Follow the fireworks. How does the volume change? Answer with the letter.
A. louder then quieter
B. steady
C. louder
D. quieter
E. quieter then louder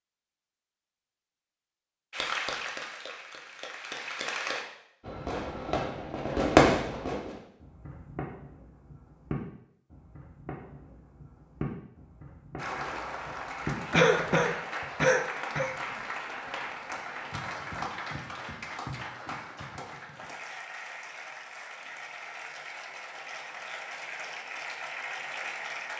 D.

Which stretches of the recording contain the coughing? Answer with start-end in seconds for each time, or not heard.
13.9-15.8.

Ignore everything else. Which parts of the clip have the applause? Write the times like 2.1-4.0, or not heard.
2.1-4.7, 12.6-25.9.